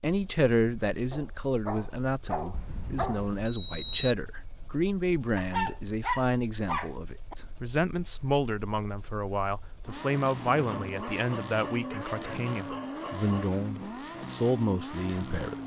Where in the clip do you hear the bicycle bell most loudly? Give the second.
4 s.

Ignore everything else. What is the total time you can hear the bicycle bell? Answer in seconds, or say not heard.
2 s.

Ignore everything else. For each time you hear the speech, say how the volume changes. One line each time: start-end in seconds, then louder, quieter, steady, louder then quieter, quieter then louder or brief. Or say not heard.
0.0-15.6 steady.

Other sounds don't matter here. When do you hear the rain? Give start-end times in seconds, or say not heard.
not heard.